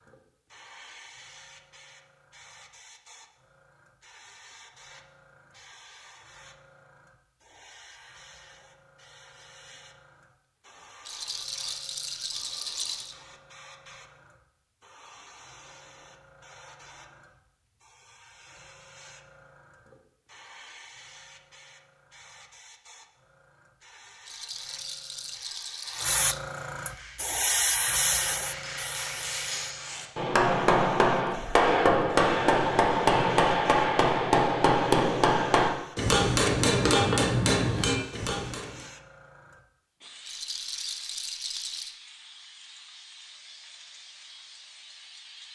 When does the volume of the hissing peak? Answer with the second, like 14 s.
28 s.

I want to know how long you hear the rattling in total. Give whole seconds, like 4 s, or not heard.
6 s.